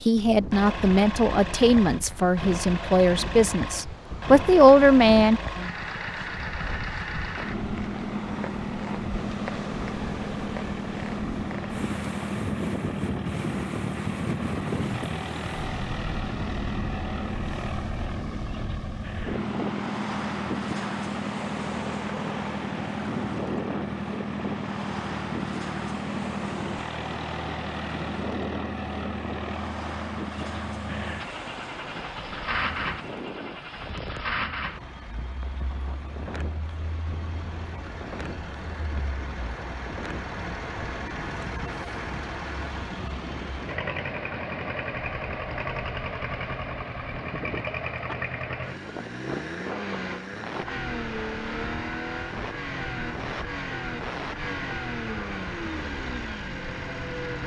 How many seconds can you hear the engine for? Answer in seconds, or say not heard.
57 s.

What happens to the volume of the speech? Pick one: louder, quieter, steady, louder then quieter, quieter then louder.
louder.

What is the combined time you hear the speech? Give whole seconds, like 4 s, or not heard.
5 s.